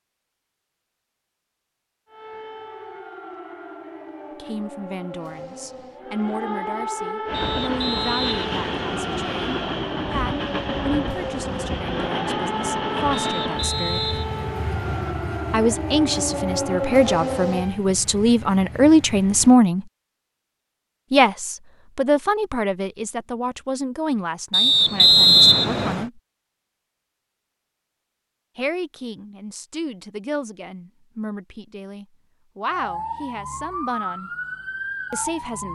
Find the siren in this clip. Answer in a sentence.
You can hear the siren from 2.0 to 17.8 s and from 32.7 to 35.7 s.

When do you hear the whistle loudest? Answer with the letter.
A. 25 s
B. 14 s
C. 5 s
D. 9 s
A.